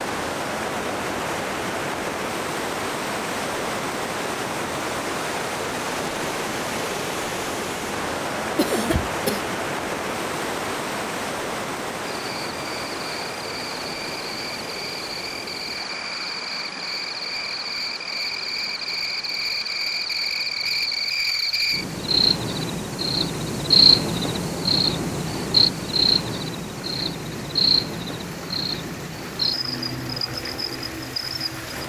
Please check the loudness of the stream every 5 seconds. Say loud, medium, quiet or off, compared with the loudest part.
loud, loud, loud, medium, quiet, quiet, medium.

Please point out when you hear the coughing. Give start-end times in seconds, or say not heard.
8.6-9.4.